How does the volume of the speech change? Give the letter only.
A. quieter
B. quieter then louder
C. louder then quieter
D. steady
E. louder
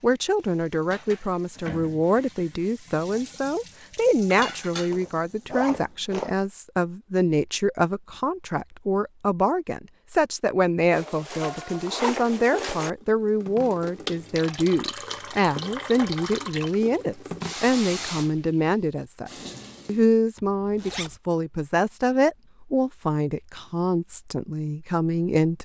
D.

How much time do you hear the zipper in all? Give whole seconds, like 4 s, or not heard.
5 s.